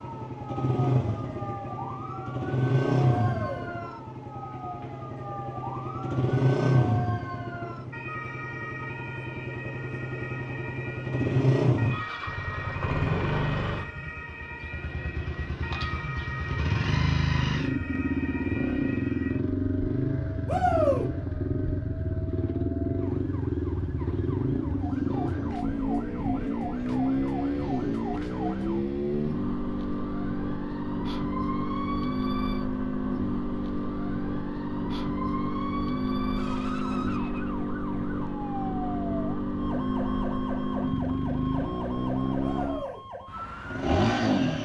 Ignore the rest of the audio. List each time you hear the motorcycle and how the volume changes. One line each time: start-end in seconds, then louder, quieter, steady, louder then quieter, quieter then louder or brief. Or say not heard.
0.0-44.6 steady.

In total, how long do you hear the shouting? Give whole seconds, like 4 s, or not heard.
2 s.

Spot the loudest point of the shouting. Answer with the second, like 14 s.
21 s.